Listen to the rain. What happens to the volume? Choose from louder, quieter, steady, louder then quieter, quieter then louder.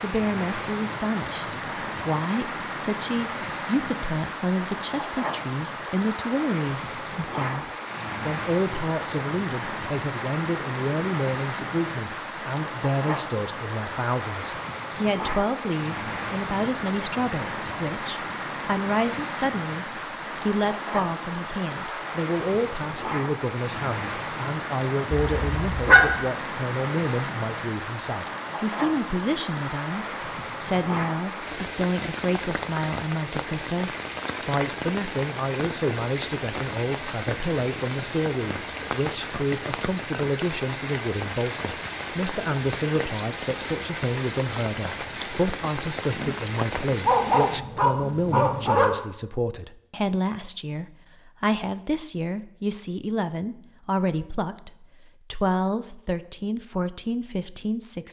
steady.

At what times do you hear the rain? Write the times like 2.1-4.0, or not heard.
0.0-47.6.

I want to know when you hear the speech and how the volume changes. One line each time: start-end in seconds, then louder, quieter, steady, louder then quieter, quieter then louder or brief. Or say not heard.
0.0-58.0 steady.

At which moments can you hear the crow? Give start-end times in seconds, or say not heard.
not heard.